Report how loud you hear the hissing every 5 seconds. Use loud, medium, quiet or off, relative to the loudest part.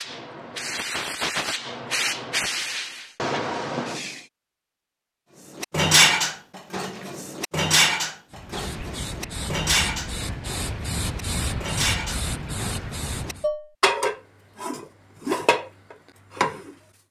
loud, medium, loud, off.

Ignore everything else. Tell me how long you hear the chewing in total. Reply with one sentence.
The chewing can't be heard in this clip.